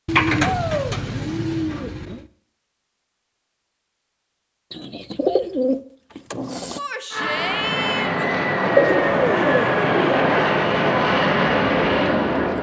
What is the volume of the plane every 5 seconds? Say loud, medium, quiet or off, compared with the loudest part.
off, loud, loud.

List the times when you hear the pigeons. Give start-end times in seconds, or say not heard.
0.1-2.2, 4.7-6.8, 8.7-10.4.